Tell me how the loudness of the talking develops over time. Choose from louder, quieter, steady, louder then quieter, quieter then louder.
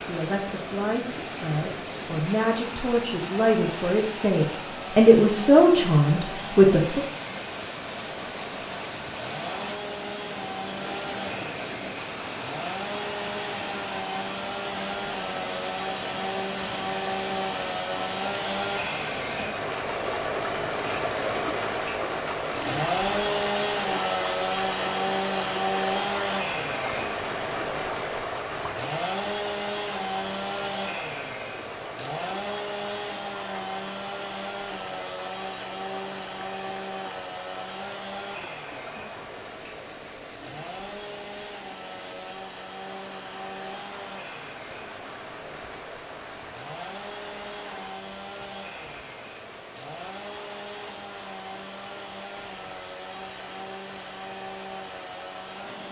louder.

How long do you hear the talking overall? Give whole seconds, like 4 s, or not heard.
7 s.